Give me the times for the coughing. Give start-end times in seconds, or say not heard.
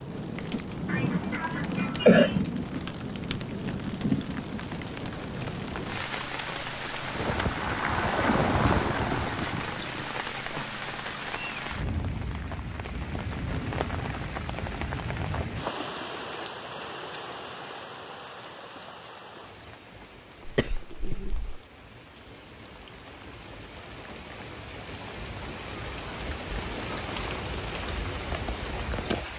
0.8-2.4, 20.4-21.6.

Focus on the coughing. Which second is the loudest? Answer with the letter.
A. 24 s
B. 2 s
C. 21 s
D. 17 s
B.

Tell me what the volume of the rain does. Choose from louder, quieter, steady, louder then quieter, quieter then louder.
quieter then louder.